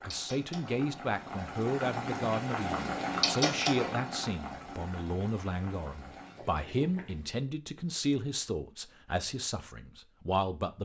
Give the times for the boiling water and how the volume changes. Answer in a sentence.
The boiling water can be heard from 0.0 to 7.3 s, getting louder then quieter.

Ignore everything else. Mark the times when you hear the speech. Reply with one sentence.
The speech can be heard from 0.0 to 10.8 s.